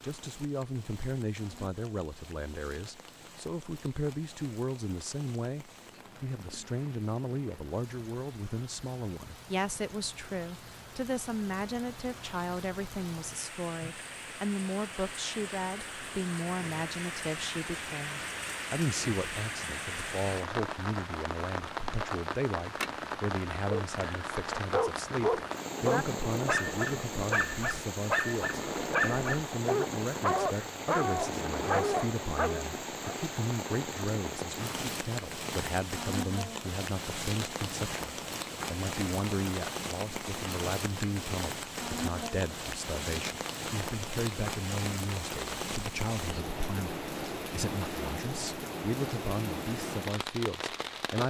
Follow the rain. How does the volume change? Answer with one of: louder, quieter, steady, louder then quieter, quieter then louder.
louder.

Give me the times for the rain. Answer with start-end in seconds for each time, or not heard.
0.0-51.2.